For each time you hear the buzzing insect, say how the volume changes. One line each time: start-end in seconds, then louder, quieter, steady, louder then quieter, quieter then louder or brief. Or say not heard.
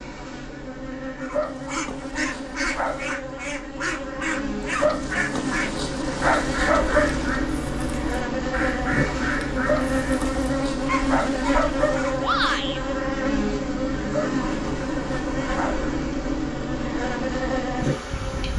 0.0-18.5 louder.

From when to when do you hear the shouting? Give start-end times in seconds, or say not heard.
12.2-12.8.